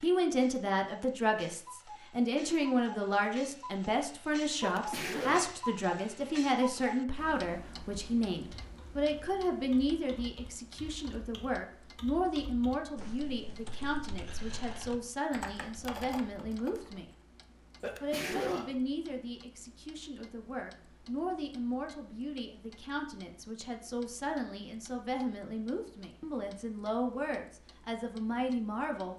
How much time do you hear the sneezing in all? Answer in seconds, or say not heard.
2 s.